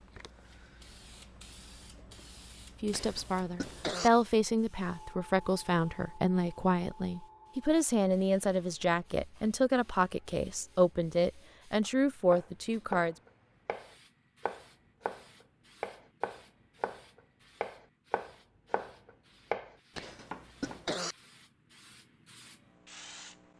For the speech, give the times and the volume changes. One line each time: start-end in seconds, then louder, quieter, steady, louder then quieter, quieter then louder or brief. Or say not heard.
2.8-13.2 steady.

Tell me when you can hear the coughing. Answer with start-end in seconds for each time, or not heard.
2.9-4.1, 19.9-21.1.